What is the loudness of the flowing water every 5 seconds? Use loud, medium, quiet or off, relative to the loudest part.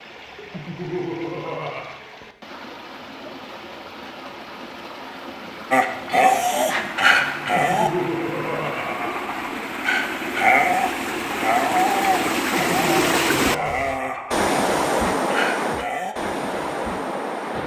quiet, medium, loud, loud.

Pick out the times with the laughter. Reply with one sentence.
The laughter can be heard from 0.5 to 2.0 s, from 7.5 to 9.6 s and from 12.6 to 14.5 s.